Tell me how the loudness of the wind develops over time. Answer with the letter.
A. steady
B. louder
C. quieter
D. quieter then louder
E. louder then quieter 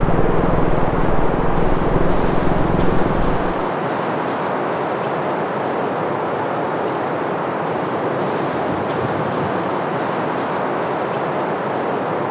A.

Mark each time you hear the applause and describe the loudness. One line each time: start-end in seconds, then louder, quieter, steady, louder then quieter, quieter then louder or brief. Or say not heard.
not heard.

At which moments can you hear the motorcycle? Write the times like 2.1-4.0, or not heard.
0.0-3.5.